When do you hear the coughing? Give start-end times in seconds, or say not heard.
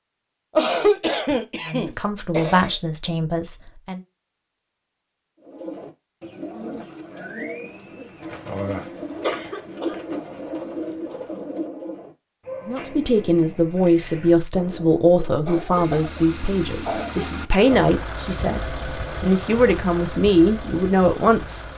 0.6-2.8, 9.2-10.2, 15.4-17.8.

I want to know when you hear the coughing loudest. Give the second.
1 s.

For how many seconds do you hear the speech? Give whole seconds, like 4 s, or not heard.
11 s.